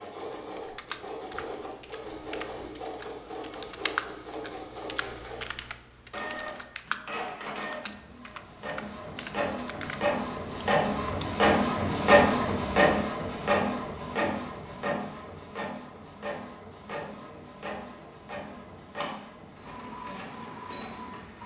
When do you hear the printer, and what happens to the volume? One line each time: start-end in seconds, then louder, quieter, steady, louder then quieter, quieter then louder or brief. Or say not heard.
0.0-21.4 louder then quieter.